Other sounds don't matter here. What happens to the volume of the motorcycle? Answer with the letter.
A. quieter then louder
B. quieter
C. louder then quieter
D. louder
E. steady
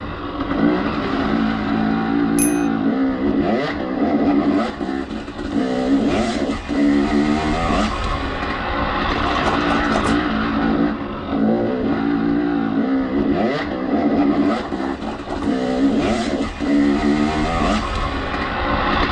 E.